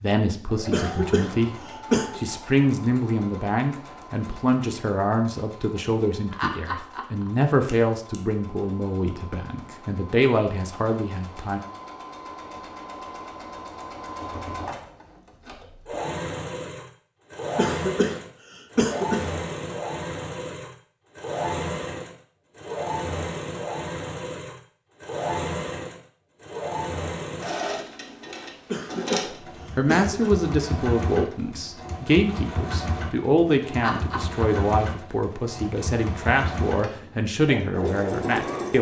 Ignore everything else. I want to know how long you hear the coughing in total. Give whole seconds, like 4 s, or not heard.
5 s.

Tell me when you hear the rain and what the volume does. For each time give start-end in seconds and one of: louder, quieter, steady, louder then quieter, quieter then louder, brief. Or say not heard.
not heard.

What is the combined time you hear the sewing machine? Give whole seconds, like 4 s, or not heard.
38 s.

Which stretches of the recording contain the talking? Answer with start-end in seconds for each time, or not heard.
0.0-11.6, 29.8-38.7.